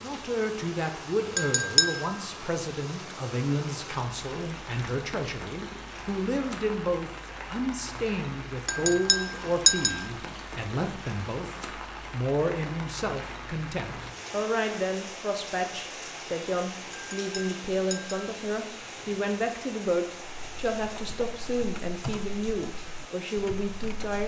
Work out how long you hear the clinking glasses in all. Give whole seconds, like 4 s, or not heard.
3 s.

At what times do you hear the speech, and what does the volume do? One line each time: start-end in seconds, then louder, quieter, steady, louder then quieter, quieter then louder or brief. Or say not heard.
0.0-24.2 steady.